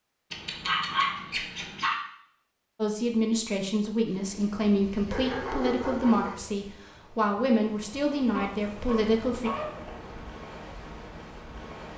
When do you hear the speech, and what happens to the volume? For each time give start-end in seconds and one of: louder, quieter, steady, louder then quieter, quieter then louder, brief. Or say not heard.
2.8-9.5 steady.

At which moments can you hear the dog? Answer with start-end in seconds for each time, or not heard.
0.3-2.0, 4.9-6.4, 8.3-9.9.